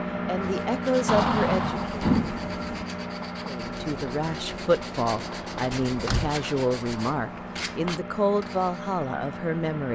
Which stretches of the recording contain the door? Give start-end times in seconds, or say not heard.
1.1-2.9, 5.8-6.4.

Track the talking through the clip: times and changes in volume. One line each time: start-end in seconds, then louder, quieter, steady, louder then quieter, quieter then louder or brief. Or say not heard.
0.2-1.9 brief
3.5-9.9 steady.